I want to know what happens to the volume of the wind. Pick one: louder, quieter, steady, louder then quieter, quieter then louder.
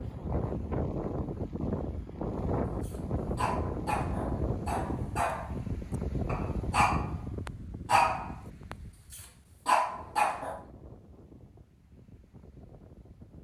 quieter.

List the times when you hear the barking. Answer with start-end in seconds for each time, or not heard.
2.9-5.6, 6.2-10.7.